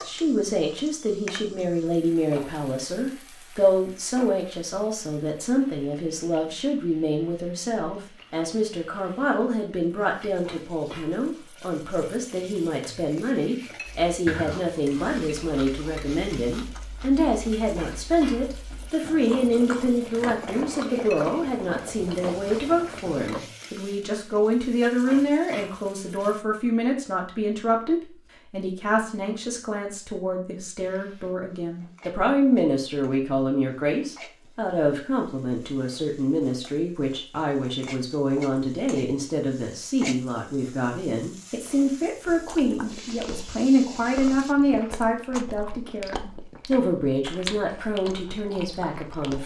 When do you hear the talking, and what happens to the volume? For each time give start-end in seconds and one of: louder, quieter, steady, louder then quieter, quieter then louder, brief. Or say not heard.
0.0-49.4 steady.